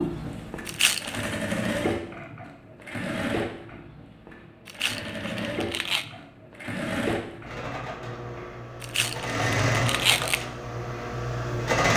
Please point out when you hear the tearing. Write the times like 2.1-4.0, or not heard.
0.7-1.3, 4.7-6.0, 8.8-10.4.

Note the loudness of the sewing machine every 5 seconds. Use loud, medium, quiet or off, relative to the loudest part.
medium, loud, loud.